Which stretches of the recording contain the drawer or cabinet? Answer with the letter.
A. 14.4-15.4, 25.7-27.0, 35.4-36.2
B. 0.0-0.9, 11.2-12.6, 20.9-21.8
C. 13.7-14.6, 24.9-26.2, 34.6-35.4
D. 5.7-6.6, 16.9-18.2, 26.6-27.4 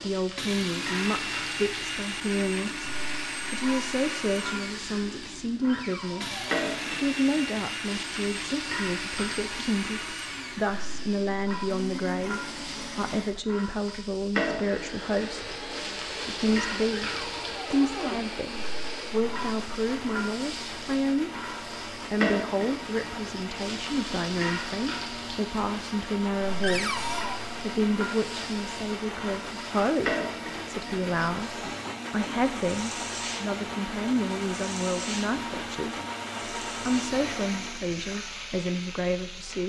D.